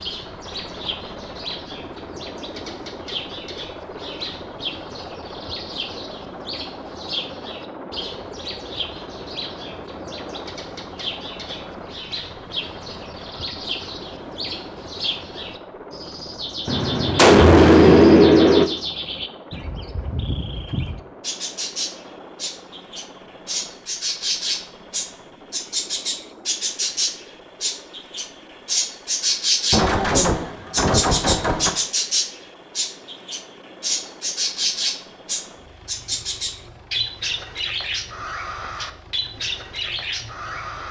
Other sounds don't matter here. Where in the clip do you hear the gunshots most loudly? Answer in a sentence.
The loudest moment of the gunshots is at 18 seconds.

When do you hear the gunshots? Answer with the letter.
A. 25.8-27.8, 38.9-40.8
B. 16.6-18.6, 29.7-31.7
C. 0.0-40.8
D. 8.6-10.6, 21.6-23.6
B.